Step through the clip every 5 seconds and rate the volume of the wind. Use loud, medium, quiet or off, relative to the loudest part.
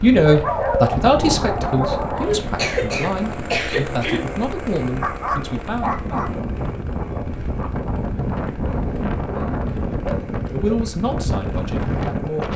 medium, loud, loud.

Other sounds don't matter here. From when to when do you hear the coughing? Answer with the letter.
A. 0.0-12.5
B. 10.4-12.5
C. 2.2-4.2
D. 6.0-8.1
C.